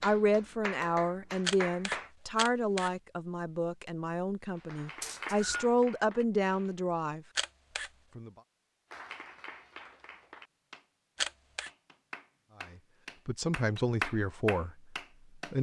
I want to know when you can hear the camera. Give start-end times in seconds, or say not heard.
1.4-2.9, 7.3-7.9, 11.2-11.7.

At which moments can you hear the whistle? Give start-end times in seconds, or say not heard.
5.0-5.7.